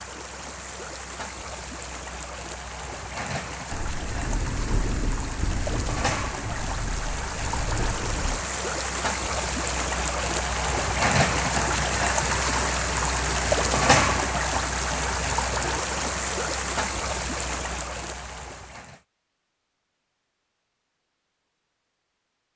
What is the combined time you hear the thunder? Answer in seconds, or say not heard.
5 s.